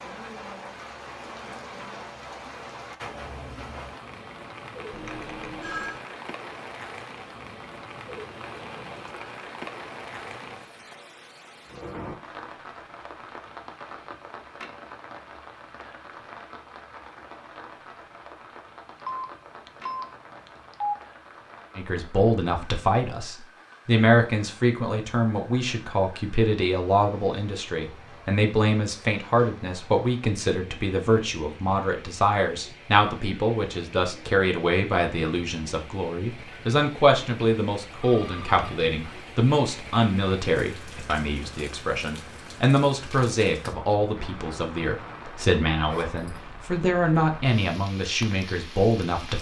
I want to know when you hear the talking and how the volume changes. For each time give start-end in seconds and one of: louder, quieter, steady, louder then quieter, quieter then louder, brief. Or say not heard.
21.8-49.3 steady.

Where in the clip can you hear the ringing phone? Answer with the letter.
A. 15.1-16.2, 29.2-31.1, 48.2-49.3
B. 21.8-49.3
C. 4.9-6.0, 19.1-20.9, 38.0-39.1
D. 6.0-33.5
C.